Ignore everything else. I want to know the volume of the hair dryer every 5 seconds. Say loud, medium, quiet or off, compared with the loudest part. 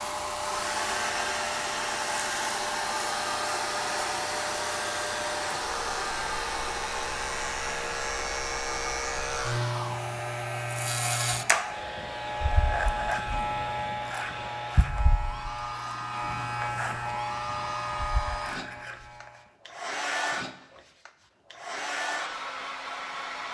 loud, loud, medium, medium, loud.